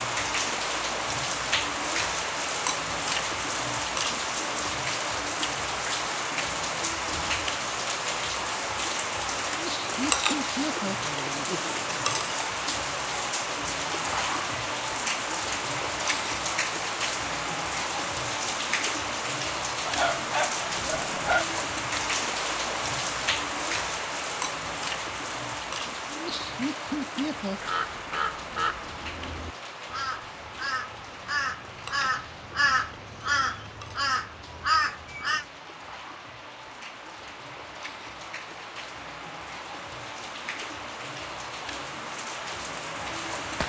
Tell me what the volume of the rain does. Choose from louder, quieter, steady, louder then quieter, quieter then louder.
quieter.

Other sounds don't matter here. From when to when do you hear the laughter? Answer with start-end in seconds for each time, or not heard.
9.4-11.7, 26.1-27.7.